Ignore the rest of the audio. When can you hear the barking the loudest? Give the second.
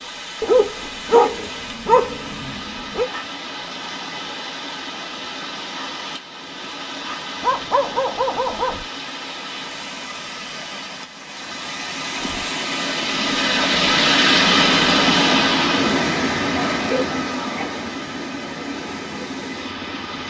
1 s.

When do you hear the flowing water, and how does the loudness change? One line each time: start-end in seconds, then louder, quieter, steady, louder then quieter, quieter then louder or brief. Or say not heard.
0.0-20.2 louder then quieter.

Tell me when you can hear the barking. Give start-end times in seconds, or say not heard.
0.4-3.1, 7.4-8.8, 16.4-17.8.